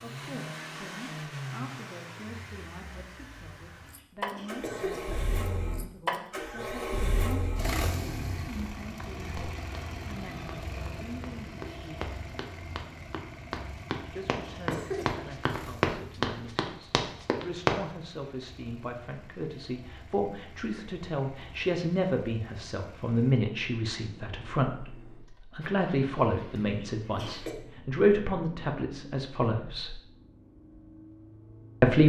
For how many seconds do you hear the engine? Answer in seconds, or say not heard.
32 s.